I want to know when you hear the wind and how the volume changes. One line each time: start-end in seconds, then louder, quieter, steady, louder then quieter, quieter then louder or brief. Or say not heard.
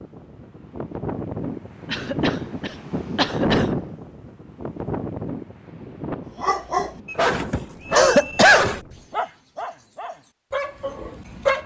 0.0-9.2 louder then quieter.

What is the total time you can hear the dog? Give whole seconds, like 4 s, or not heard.
5 s.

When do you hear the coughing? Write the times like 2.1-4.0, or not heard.
1.9-3.8, 8.0-8.7.